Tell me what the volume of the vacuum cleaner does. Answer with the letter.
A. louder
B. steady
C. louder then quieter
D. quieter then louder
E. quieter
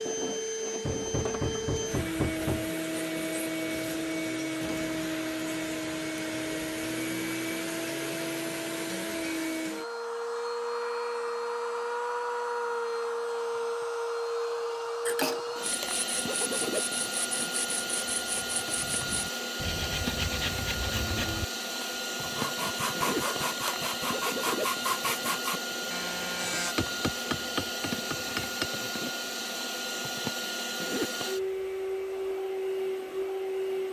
B.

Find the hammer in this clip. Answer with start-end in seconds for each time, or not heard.
0.8-2.7, 26.8-28.7.